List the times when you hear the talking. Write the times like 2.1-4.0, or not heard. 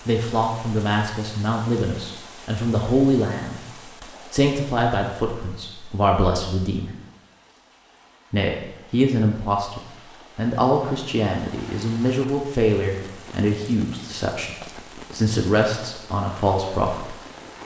0.1-3.6, 4.3-6.9, 8.3-17.1.